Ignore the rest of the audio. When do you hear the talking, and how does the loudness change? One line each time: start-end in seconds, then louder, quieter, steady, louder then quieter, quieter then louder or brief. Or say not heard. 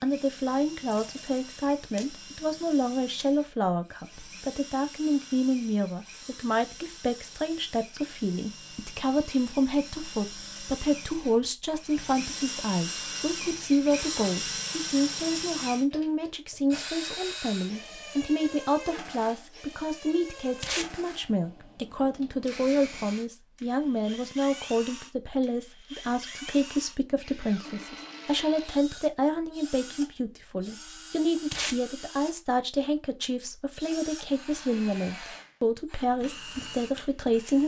0.0-37.6 steady.